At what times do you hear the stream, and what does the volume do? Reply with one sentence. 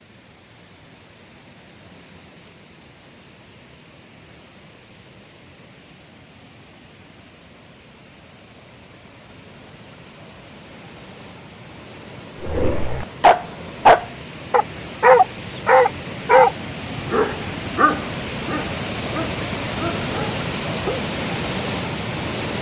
The stream can be heard from 0.0 to 22.5 s, getting louder.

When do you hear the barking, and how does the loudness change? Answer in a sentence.
The barking can be heard from 12.4 to 21.0 s, getting quieter.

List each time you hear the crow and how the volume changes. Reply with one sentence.
The crow can't be heard in this clip.